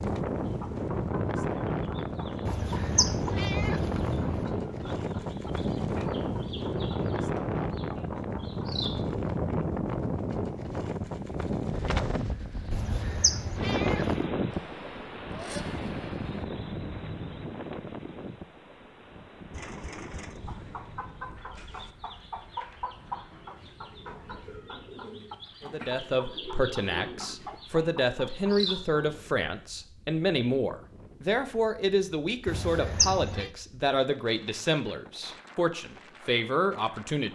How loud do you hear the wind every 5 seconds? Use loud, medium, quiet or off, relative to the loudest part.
loud, loud, loud, medium, quiet, quiet, quiet, quiet.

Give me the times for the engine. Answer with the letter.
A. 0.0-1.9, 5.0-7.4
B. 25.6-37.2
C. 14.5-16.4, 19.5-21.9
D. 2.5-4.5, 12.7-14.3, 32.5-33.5
C.